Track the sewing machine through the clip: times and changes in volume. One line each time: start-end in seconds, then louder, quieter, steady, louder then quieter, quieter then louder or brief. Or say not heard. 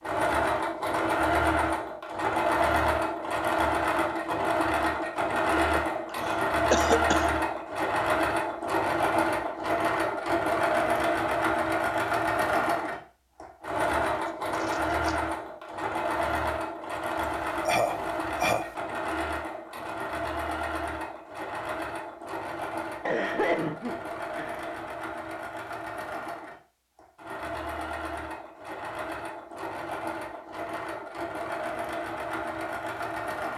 0.0-33.5 quieter.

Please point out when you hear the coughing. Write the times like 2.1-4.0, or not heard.
5.5-7.3, 17.6-18.6, 23.1-24.8.